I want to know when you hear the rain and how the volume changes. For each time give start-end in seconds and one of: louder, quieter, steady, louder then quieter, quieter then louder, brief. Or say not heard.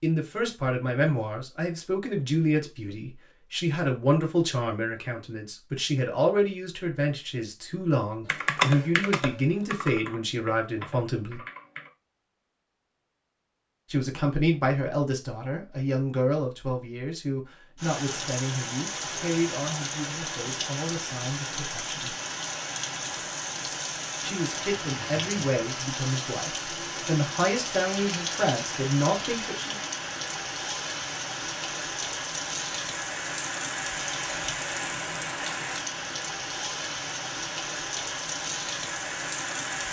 17.8-39.8 steady.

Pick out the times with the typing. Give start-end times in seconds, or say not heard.
8.2-11.9.